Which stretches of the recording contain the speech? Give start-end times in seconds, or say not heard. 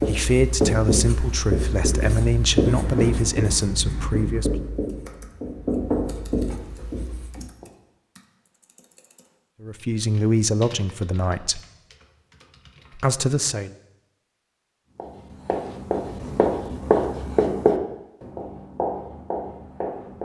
0.0-4.5, 9.6-11.6, 12.9-13.8.